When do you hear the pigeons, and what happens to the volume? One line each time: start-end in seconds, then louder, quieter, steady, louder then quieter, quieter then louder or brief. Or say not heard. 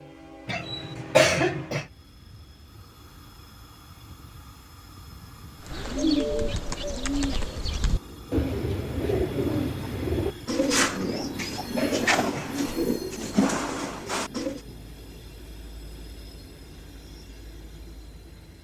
5.6-14.6 steady.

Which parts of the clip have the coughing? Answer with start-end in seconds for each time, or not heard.
0.5-1.9, 11.1-12.7.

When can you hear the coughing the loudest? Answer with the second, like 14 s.
1 s.